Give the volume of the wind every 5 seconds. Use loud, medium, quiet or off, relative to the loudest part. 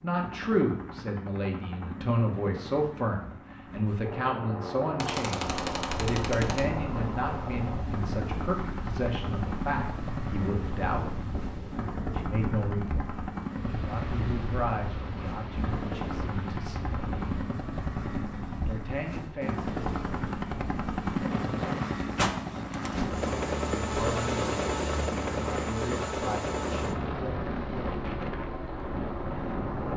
off, loud, loud, loud, loud, loud.